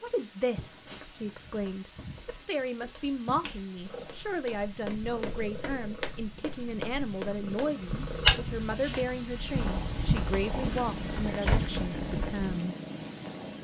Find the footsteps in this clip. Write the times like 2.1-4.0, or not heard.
0.9-12.4.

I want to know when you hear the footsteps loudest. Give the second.
8 s.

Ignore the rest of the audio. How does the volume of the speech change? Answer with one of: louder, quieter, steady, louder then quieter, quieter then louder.
steady.